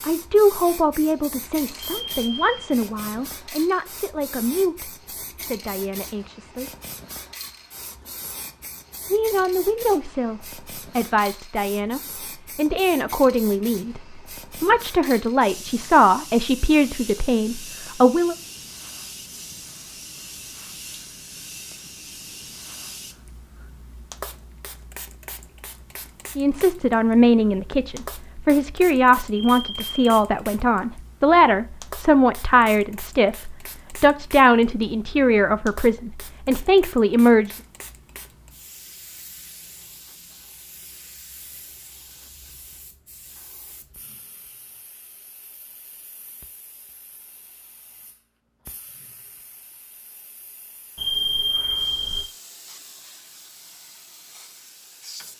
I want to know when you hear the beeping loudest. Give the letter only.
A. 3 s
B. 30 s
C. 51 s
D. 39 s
C.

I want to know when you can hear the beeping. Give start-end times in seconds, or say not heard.
1.8-2.7, 29.3-30.2, 51.0-52.3.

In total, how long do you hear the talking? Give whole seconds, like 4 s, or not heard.
27 s.